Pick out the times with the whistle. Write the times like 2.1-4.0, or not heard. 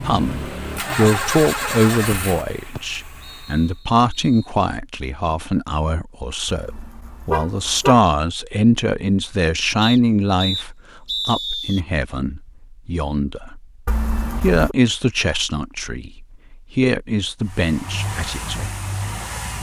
2.8-4.5, 9.8-11.8.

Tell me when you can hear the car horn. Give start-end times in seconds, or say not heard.
6.5-8.0, 13.8-14.8.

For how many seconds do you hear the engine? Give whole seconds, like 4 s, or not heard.
6 s.